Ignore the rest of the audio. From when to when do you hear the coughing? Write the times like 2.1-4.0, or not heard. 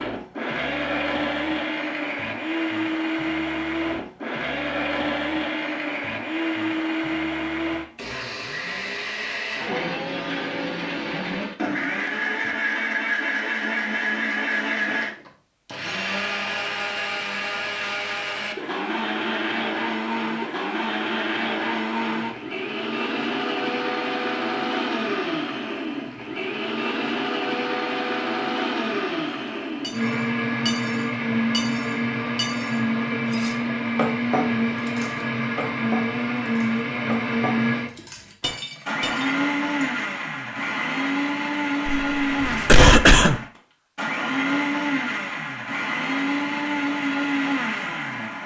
41.9-43.4.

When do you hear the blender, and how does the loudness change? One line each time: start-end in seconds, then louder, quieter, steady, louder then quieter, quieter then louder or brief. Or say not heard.
0.0-48.4 steady.